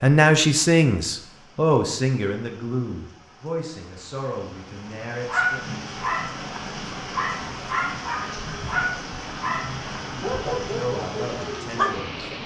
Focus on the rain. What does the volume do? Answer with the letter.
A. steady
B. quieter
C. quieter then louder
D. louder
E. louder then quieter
D.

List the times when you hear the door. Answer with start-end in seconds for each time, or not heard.
not heard.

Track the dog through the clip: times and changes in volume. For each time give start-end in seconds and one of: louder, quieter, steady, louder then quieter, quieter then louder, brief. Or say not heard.
5.2-12.0 steady.